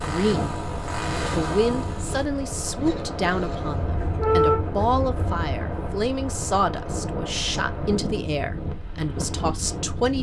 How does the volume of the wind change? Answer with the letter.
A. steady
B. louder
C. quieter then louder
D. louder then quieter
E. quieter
A.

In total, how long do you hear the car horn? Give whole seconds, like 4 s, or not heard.
2 s.